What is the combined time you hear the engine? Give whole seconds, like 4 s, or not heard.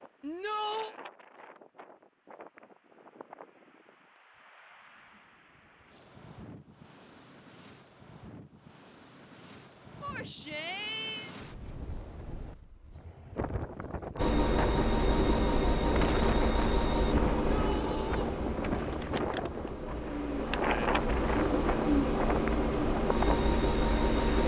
10 s.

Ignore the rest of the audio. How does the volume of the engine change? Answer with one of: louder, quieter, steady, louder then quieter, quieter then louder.
quieter then louder.